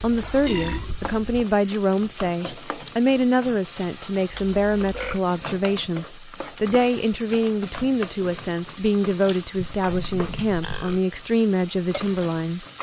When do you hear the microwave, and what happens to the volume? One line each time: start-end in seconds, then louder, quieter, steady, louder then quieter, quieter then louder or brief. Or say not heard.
not heard.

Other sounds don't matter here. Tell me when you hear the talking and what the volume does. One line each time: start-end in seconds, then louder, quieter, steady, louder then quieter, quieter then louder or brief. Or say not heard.
0.0-12.7 steady.